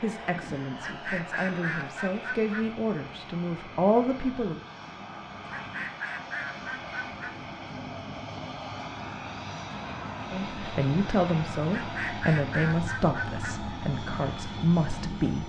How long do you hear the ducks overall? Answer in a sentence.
The ducks can be heard for 6 seconds in total.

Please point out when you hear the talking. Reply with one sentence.
You can hear the talking from 0.0 to 4.6 s and from 10.3 to 15.4 s.